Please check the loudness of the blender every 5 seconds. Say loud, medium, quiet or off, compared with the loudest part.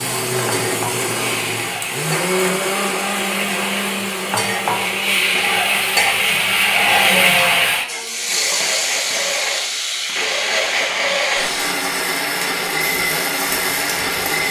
loud, medium, loud.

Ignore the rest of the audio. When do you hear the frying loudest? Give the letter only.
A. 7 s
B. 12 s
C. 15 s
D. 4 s
A.